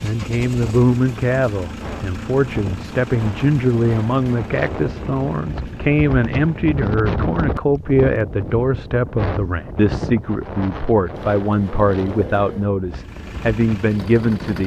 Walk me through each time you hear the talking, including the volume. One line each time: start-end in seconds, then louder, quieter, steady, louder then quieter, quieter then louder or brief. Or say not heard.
0.0-14.6 steady.